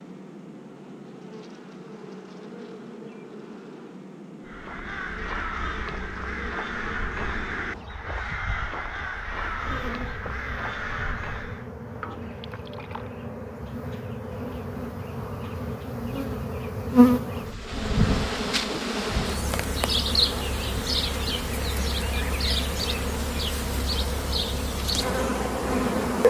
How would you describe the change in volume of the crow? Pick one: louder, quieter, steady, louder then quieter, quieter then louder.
steady.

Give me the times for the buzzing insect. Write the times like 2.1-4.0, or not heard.
0.0-26.2.